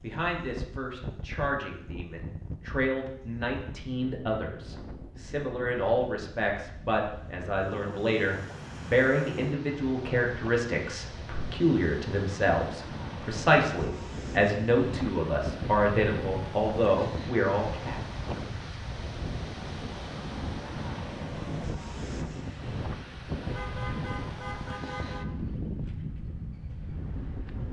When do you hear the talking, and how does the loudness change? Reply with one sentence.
You can hear the talking from 0.0 to 17.9 s, getting louder.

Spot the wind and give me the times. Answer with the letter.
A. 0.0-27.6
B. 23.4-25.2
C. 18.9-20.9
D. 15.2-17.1
A.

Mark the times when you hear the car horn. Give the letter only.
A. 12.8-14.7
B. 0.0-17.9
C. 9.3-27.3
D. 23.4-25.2
D.